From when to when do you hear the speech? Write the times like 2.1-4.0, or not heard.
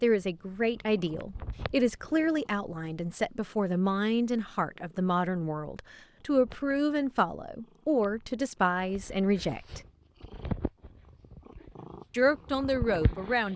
0.0-9.8, 12.1-13.5.